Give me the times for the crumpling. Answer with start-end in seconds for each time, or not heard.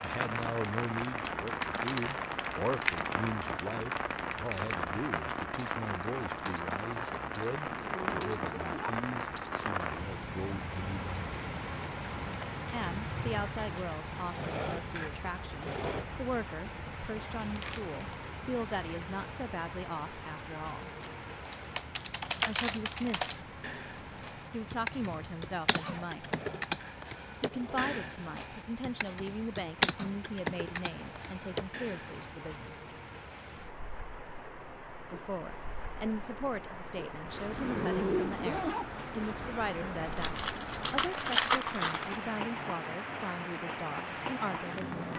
1.6-3.1, 17.4-18.1, 40.0-42.2.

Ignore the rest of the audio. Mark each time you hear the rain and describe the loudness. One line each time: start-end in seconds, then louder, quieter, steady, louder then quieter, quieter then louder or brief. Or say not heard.
0.0-45.1 quieter then louder.